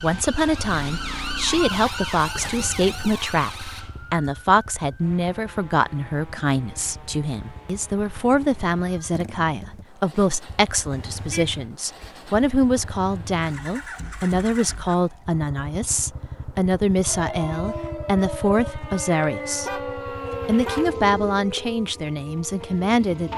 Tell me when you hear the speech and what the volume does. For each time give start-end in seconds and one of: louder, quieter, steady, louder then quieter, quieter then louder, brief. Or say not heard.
0.0-23.3 steady.